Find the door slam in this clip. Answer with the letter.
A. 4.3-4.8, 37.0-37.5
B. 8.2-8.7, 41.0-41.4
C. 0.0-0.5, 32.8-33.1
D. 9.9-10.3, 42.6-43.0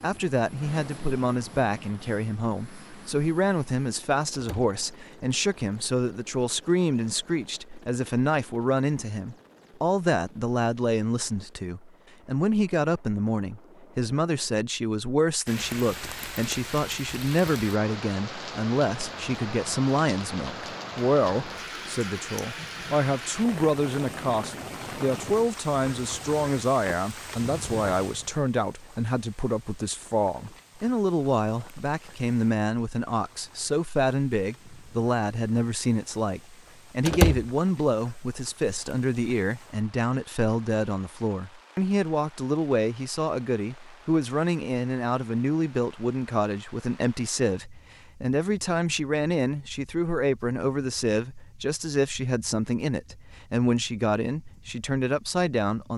A.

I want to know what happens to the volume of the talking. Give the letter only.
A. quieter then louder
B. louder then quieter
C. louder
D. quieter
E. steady
E.